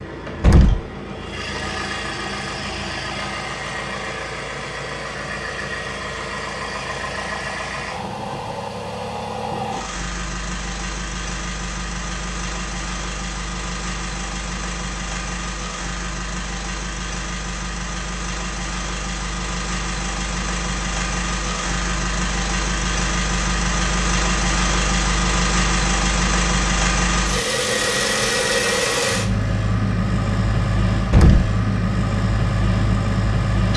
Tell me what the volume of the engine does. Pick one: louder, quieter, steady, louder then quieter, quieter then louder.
louder.